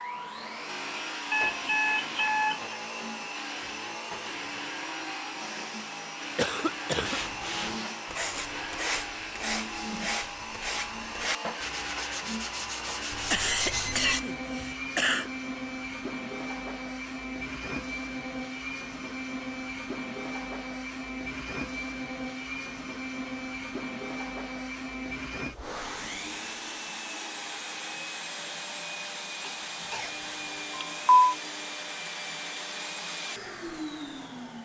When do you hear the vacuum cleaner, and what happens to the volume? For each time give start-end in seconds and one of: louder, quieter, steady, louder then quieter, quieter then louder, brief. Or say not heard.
0.0-34.6 steady.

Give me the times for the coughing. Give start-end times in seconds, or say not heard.
6.3-7.2, 13.3-15.3, 29.4-30.1.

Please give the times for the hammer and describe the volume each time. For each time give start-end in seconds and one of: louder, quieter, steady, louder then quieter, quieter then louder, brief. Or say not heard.
not heard.